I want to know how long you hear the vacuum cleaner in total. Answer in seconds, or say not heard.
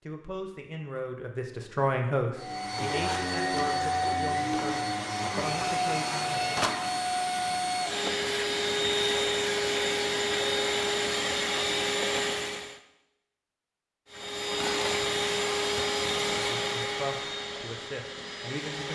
15 s.